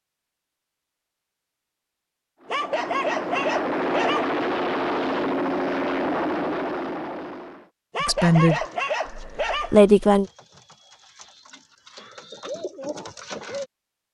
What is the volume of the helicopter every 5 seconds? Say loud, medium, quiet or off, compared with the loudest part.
loud, loud, off.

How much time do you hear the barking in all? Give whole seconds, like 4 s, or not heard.
4 s.